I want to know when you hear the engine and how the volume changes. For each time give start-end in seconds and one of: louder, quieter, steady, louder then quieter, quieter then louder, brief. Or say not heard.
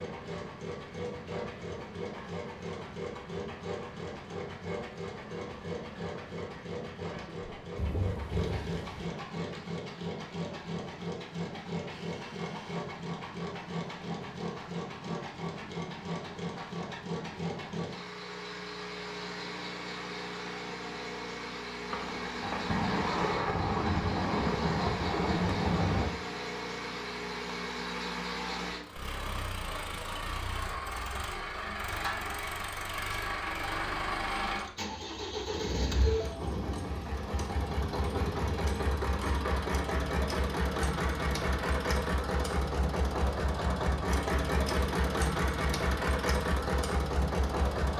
0.0-47.9 louder.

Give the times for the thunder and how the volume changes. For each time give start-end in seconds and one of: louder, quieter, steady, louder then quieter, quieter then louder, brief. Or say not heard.
7.8-9.1 brief
21.9-26.1 steady
36.4-38.9 brief.